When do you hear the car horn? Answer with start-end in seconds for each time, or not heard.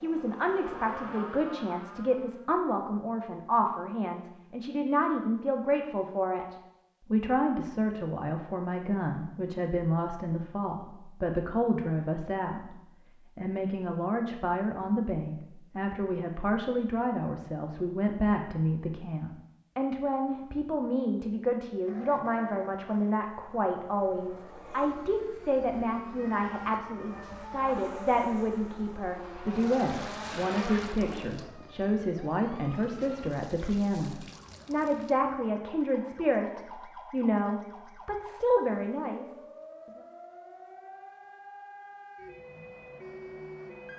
not heard.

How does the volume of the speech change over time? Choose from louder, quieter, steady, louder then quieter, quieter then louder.
steady.